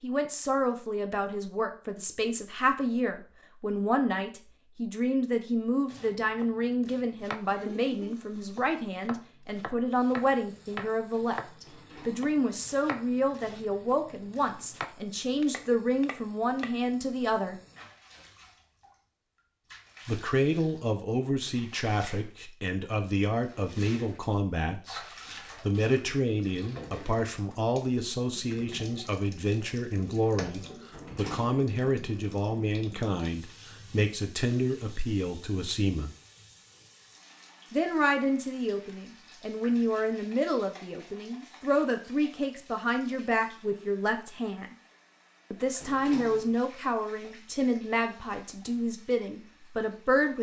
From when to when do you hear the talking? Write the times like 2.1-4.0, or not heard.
0.0-17.6, 20.1-25.0, 25.6-36.1, 37.7-44.8, 45.5-50.3.